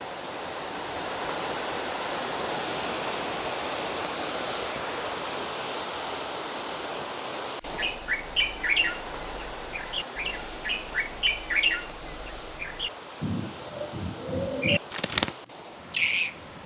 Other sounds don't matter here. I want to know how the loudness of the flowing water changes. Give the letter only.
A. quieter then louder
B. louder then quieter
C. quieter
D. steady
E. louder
C.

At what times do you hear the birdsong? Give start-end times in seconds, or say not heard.
7.6-16.6.